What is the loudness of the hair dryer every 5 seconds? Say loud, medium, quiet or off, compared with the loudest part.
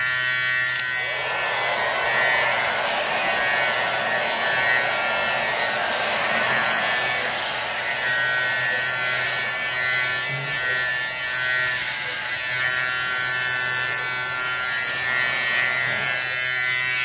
loud, loud, quiet, medium.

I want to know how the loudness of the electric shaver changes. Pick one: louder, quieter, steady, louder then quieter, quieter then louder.
steady.